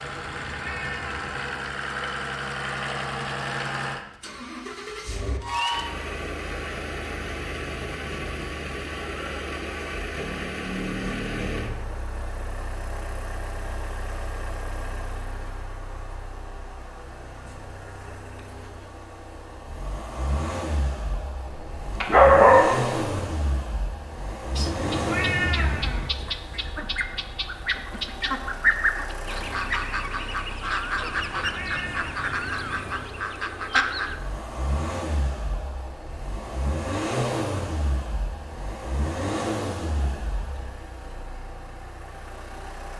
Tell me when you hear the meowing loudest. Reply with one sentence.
The loudest moment of the meowing is at 25 seconds.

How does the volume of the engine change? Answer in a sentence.
The volume of the engine goes down, then up.